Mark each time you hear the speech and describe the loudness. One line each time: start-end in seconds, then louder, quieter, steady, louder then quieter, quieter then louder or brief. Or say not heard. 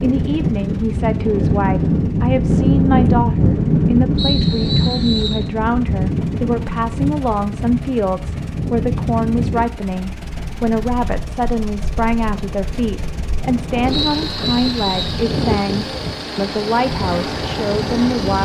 0.0-18.4 steady.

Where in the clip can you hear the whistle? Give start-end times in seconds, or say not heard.
4.2-5.5, 13.9-15.2.